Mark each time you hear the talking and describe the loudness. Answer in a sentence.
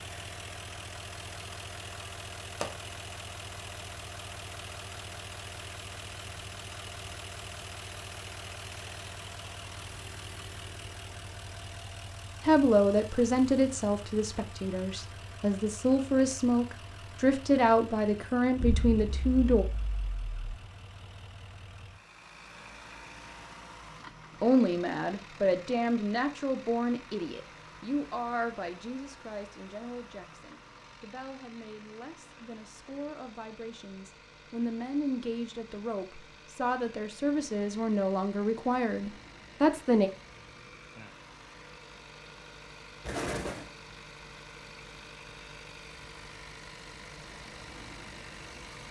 The talking can be heard from 12.4 to 19.6 s, getting quieter then louder; and from 24.4 to 40.1 s, getting quieter then louder.